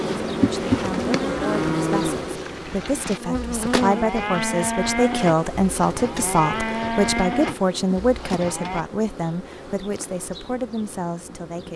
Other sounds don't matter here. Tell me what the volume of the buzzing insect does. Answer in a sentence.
The volume of the buzzing insect goes down.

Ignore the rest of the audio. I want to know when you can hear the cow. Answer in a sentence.
You can hear the cow from 0.0 to 8.8 s.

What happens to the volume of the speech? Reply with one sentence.
The volume of the speech goes up, then down.